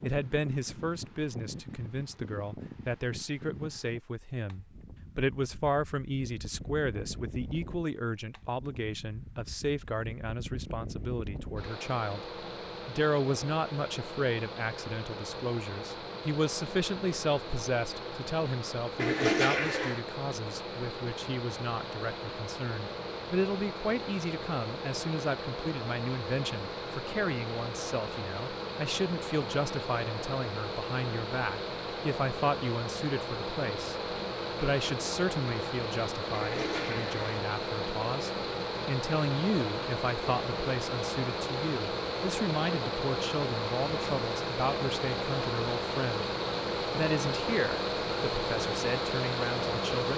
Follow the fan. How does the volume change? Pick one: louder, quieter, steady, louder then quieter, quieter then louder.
louder.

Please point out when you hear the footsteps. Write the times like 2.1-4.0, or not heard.
not heard.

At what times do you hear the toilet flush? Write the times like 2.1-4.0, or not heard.
18.9-20.0, 36.3-37.2.